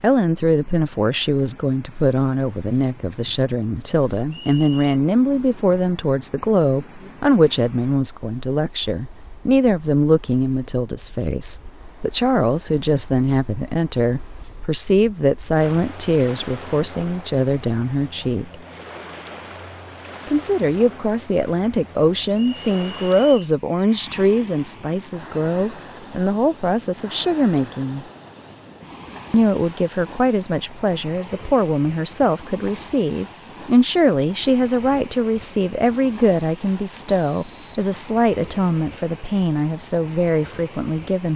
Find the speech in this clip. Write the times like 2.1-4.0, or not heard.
0.0-18.6, 20.2-28.1, 29.3-41.3.